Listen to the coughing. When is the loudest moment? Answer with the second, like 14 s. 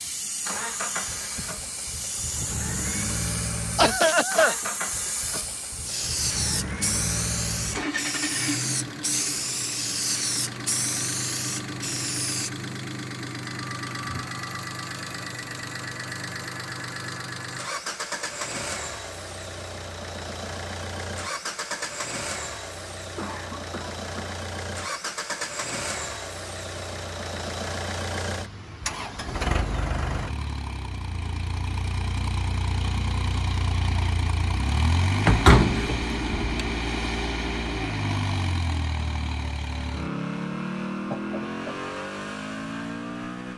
4 s.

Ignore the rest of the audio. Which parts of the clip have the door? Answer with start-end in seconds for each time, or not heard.
35.2-36.7.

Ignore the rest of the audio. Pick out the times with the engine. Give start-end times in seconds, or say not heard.
0.0-43.5.